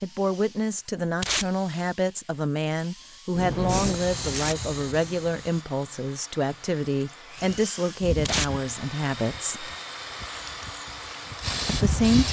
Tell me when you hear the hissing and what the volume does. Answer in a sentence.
You can hear the hissing briefly from 3.4 to 5.7 s; and from 7.3 to 12.2 s, getting quieter then louder.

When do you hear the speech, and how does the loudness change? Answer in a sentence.
The speech can be heard from 0.0 to 9.7 s, at a steady volume; and briefly from 11.7 to 12.2 s.